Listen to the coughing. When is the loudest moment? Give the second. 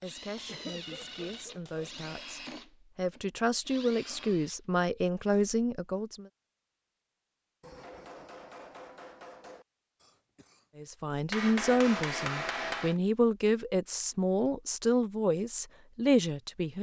1 s.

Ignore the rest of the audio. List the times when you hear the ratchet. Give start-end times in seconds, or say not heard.
not heard.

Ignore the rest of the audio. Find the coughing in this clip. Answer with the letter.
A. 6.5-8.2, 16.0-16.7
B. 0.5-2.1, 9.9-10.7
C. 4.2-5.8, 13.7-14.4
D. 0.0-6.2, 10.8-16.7
B.